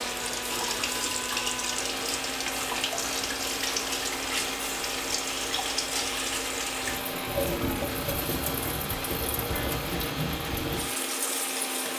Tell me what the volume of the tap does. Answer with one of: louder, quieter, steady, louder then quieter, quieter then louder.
steady.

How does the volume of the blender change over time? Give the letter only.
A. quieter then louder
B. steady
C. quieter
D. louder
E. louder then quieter
B.